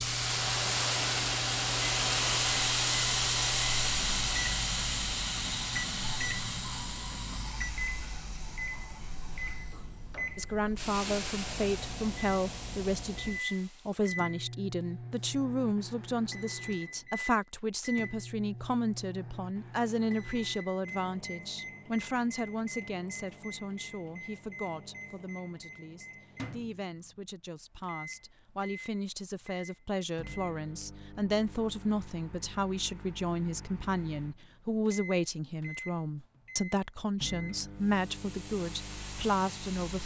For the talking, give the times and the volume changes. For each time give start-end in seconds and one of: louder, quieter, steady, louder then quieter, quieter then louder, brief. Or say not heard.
10.3-40.0 quieter then louder.